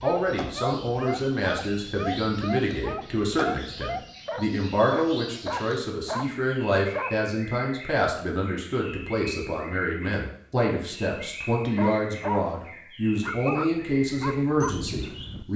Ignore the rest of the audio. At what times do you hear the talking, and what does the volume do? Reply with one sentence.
The talking can be heard from 0.0 to 15.5 s, at a steady volume.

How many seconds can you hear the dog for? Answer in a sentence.
You can hear the dog for 11 seconds altogether.